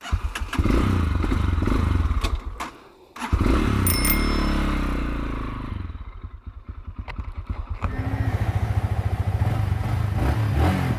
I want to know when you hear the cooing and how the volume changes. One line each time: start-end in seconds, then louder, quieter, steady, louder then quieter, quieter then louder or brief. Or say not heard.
not heard.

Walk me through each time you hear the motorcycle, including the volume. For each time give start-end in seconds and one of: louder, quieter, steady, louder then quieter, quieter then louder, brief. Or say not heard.
0.0-10.9 quieter then louder.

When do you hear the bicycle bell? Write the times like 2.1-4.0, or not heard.
3.9-4.5.